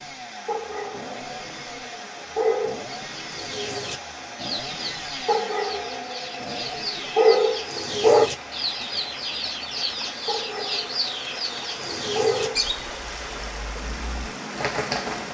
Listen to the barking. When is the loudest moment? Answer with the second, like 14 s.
8 s.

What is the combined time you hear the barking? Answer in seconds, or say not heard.
8 s.